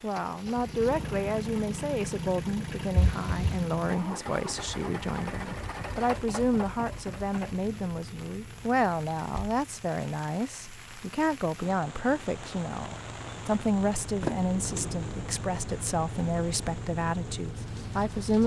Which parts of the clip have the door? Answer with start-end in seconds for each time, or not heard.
3.0-3.6, 9.2-9.6, 14.2-15.3.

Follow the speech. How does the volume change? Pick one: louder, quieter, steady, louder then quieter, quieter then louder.
steady.